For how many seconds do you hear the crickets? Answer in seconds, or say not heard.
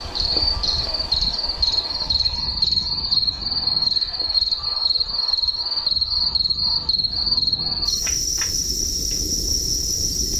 10 s.